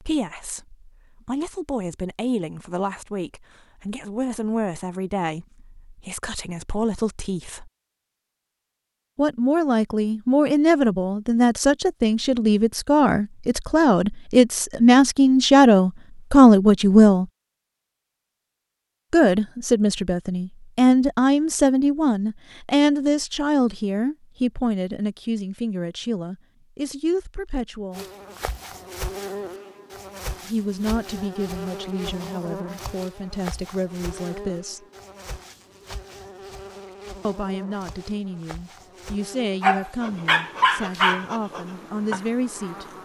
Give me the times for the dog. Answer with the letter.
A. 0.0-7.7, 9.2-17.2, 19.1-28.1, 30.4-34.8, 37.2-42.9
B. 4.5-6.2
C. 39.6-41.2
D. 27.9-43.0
C.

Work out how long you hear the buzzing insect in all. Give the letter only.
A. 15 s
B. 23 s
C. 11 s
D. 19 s
A.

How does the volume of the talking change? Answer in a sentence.
The loudness of the talking goes up, then down.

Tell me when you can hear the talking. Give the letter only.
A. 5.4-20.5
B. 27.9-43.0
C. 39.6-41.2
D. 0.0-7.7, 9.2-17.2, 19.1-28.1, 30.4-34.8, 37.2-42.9
D.